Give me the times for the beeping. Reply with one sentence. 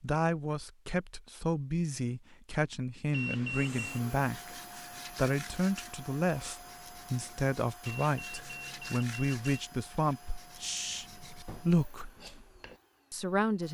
The beeping can be heard from 3.1 to 4.0 s and from 7.8 to 9.6 s.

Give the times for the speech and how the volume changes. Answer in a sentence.
The speech can be heard from 0.0 to 12.1 s, at a steady volume; and briefly from 13.1 to 13.6 s.